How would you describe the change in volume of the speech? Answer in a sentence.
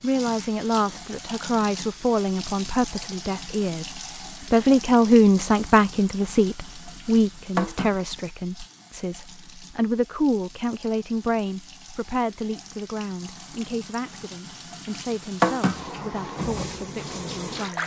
The volume of the speech goes up, then down.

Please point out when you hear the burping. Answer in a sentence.
The burping can't be heard in this clip.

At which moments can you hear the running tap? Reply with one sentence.
You can hear the running tap from 0.0 to 17.8 s.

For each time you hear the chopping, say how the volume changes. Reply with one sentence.
The chopping can't be heard in this clip.